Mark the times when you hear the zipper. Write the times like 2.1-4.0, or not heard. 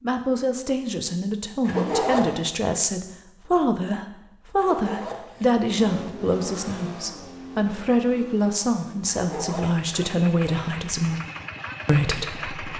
1.6-2.4, 4.5-5.5, 9.1-10.7.